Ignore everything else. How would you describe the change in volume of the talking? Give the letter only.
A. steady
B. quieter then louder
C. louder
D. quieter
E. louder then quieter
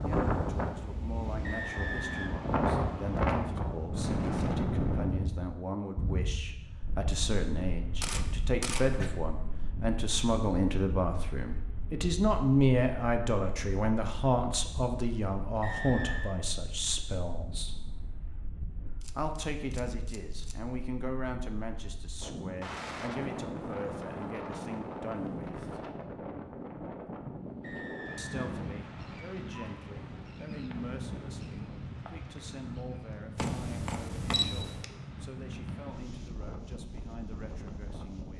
E.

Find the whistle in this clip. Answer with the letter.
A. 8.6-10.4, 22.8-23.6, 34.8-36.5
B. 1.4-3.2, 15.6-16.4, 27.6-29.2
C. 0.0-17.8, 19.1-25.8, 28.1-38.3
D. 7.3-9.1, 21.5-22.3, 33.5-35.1
B.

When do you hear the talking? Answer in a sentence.
The talking can be heard from 0.0 to 17.8 s, from 19.1 to 25.8 s and from 28.1 to 38.3 s.